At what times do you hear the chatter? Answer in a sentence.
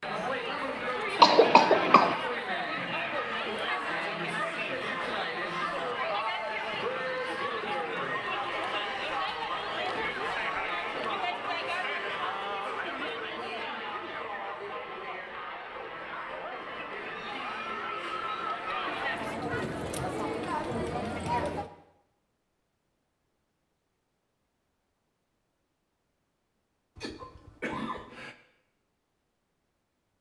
The chatter can be heard from 0.0 to 21.7 s.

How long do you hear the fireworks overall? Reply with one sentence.
The fireworks can't be heard in this clip.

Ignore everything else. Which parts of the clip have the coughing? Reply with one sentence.
You can hear the coughing from 1.1 to 2.1 s and from 26.9 to 28.4 s.